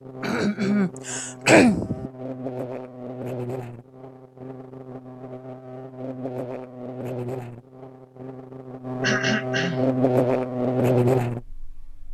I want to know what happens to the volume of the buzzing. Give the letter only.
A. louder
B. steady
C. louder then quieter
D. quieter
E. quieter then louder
A.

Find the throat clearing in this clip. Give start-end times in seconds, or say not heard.
0.2-2.1, 9.0-9.9.